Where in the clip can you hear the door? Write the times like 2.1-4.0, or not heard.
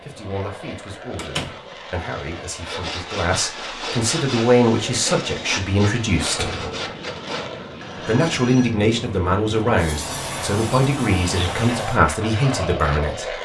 1.1-1.6, 6.3-6.9, 9.7-12.0.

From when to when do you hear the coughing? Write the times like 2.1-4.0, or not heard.
not heard.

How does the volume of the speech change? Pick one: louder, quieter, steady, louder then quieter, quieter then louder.
louder.